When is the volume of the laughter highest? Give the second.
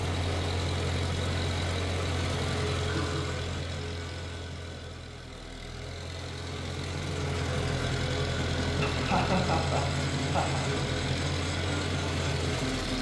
9 s.